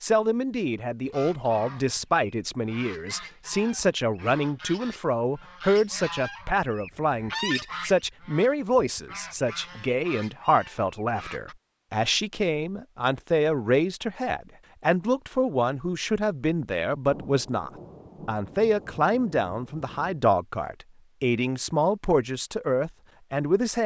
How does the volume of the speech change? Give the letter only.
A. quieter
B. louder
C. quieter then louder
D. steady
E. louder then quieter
D.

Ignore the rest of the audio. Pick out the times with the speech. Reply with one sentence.
You can hear the speech from 0.0 to 23.8 s.